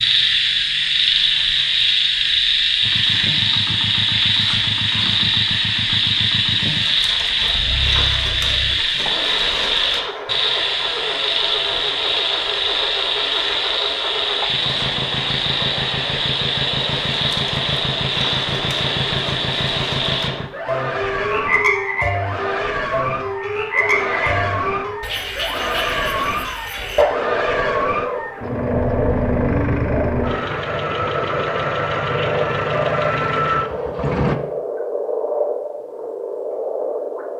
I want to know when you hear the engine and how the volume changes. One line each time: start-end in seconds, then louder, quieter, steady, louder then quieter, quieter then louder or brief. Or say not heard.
2.8-34.4 louder.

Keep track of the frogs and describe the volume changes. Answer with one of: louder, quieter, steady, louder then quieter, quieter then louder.
quieter.